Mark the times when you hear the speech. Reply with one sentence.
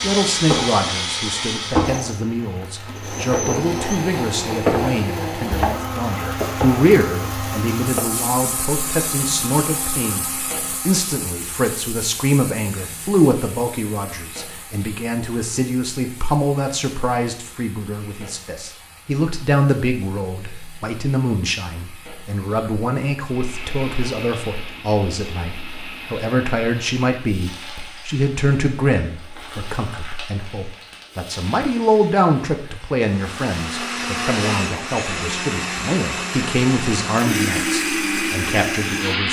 The speech can be heard from 0.0 to 39.2 s.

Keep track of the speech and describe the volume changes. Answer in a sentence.
The loudness of the speech stays about the same.